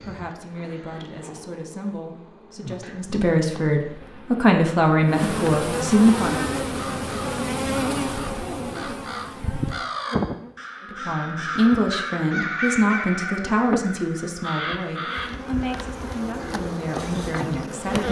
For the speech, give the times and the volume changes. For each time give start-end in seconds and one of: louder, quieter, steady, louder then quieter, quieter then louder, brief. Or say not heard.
0.0-6.3 louder
10.9-18.0 quieter.